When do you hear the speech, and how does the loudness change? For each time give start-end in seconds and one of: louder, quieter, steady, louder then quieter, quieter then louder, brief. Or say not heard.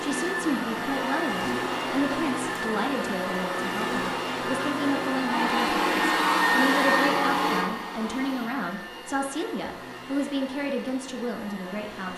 0.0-12.1 steady.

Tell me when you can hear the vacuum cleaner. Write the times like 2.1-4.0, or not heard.
0.0-12.1.